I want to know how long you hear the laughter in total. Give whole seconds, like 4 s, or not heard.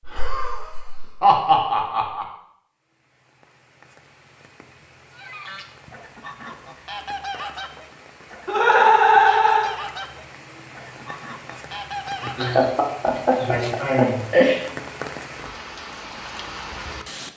6 s.